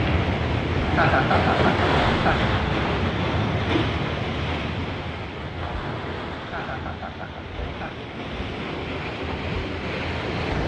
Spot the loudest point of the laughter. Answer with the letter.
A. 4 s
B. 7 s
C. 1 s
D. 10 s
C.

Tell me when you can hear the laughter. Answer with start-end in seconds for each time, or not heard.
0.8-2.5, 6.3-8.1.